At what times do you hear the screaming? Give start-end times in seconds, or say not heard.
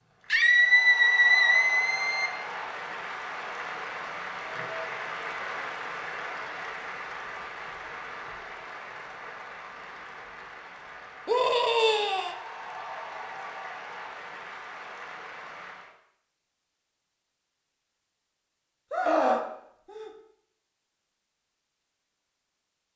0.3-2.3, 11.2-12.3, 18.9-20.1.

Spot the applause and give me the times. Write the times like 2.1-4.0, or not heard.
0.1-15.9.